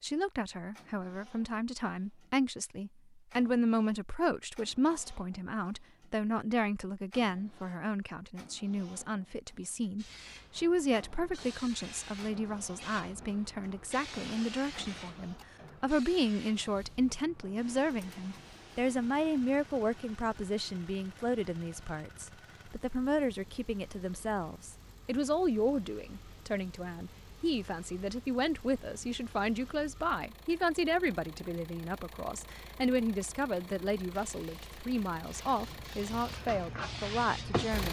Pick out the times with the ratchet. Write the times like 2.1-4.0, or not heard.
not heard.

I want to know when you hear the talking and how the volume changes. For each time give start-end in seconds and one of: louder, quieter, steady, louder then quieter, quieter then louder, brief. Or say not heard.
0.0-37.8 steady.